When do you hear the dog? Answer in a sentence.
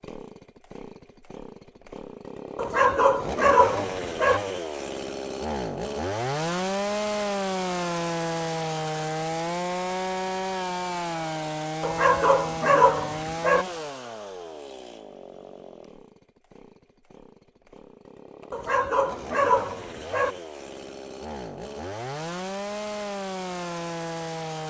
The dog can be heard from 2.5 to 4.4 s, from 11.8 to 13.7 s and from 18.5 to 20.4 s.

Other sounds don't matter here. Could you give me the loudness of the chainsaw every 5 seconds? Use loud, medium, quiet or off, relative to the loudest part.
medium, loud, loud, quiet, medium.